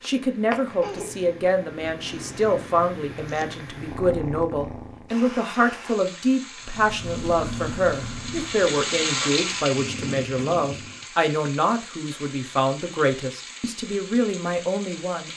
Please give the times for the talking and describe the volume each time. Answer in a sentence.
The talking can be heard from 0.0 to 15.3 s, at a steady volume.